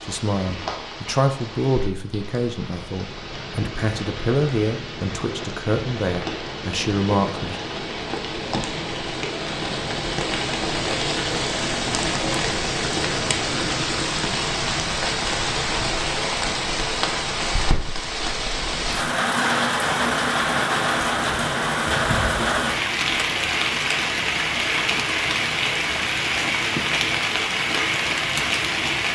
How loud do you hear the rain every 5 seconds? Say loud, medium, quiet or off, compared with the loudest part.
quiet, medium, loud, loud, loud, loud.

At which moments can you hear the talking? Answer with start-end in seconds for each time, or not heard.
0.0-7.5.